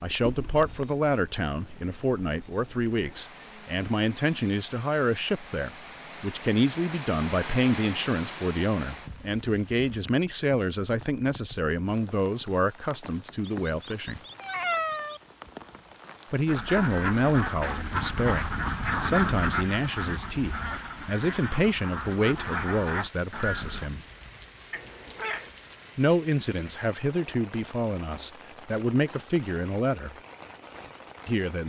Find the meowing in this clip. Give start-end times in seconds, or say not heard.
0.2-0.8, 13.4-15.2, 24.7-25.5.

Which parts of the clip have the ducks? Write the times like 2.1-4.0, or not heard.
16.4-23.9.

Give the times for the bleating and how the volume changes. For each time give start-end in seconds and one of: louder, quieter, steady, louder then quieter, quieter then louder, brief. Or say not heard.
not heard.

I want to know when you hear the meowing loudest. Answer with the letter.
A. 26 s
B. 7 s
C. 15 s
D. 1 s
C.